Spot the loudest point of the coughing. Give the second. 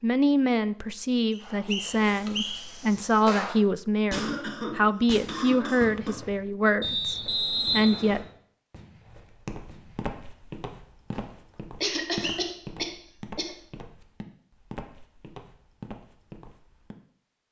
12 s.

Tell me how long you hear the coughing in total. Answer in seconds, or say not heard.
4 s.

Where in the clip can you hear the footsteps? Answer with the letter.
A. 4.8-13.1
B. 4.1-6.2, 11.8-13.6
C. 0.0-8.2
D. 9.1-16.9
D.